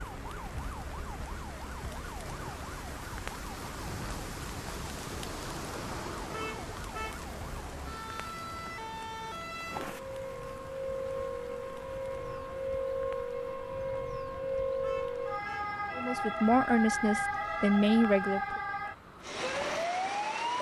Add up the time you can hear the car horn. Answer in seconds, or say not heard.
2 s.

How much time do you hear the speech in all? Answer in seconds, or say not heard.
3 s.